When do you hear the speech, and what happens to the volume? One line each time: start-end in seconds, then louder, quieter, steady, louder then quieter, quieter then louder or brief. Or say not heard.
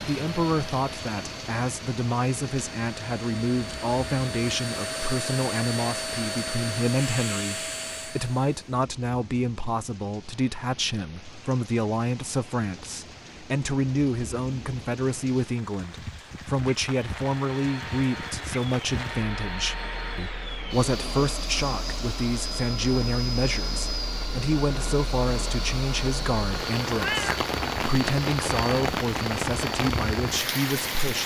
0.0-31.2 steady.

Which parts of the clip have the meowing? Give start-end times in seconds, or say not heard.
26.9-27.4.